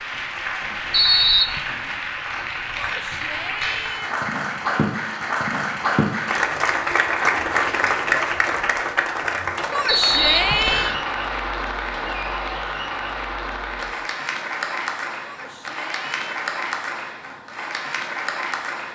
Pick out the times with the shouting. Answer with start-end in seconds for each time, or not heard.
2.8-4.2, 9.7-10.9, 15.2-16.2.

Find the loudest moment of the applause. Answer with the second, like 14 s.
8 s.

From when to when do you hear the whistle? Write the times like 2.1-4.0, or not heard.
0.9-1.6, 9.8-11.0.